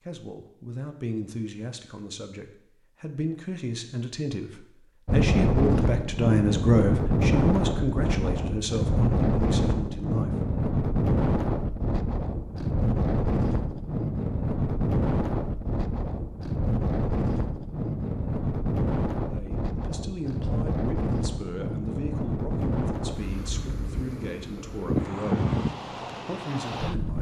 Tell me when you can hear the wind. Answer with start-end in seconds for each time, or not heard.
5.0-27.1.